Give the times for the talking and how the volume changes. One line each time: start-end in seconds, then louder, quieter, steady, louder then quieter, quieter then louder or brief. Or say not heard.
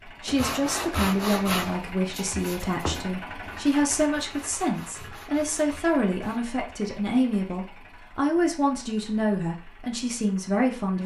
0.1-11.0 steady.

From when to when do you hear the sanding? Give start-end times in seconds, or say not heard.
0.2-6.4.